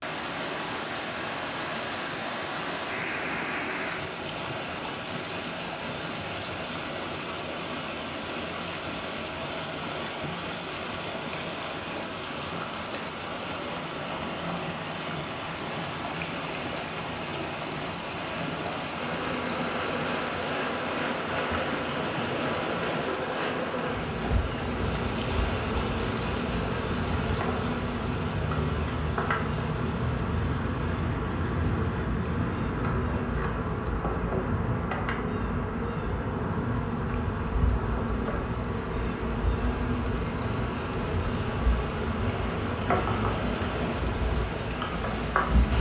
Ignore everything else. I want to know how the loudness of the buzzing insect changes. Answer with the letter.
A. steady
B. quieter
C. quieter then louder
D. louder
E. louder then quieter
A.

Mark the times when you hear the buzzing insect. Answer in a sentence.
You can hear the buzzing insect from 19.0 to 45.7 s.